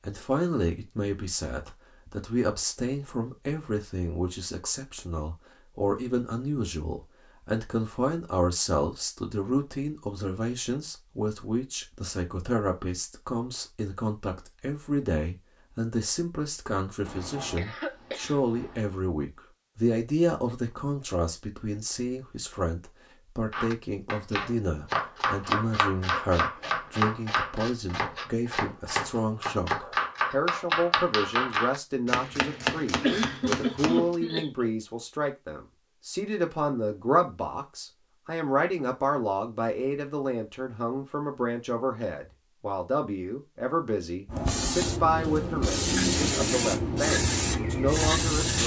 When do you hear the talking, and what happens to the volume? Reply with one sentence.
The talking can be heard from 0.0 to 48.6 s, at a steady volume.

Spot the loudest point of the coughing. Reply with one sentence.
The volume of the coughing peaks at 33 seconds.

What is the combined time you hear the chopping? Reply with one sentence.
You can hear the chopping for 11 seconds altogether.